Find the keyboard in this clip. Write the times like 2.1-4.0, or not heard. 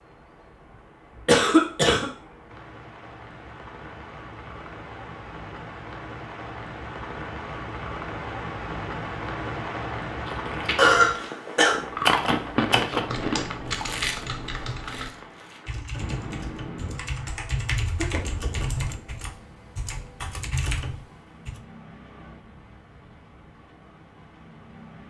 12.1-21.6.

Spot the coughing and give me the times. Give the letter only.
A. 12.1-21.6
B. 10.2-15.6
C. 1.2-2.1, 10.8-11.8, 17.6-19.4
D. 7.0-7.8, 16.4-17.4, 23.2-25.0
C.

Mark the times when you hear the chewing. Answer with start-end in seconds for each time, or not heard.
10.2-15.6.